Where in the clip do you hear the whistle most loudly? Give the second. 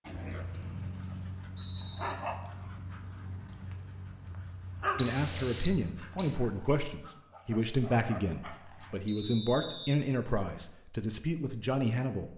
5 s.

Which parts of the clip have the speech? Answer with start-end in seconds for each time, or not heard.
5.0-12.3.